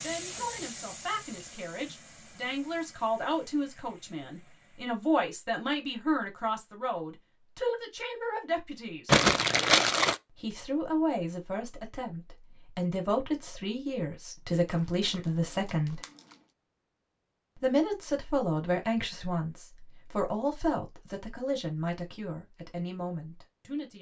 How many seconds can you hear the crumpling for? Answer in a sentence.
You can hear the crumpling for 3 seconds altogether.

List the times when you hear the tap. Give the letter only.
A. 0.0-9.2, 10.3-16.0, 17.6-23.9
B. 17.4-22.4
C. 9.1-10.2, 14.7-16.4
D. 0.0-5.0
D.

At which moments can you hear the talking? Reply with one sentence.
You can hear the talking from 0.0 to 9.2 s, from 10.3 to 16.0 s and from 17.6 to 23.9 s.